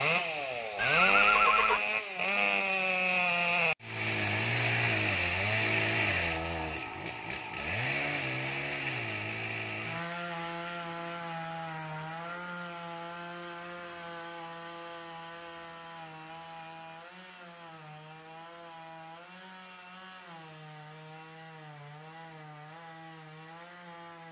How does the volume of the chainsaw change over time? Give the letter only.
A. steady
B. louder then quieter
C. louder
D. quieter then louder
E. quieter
E.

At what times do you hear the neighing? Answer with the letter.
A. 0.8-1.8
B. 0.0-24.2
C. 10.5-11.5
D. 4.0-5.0
A.